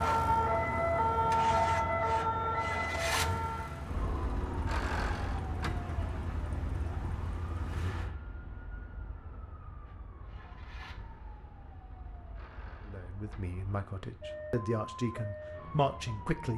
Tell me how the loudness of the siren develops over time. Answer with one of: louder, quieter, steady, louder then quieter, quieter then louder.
quieter then louder.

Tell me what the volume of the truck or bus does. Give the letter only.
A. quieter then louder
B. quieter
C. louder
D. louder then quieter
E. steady
B.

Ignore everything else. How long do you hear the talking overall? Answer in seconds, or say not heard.
4 s.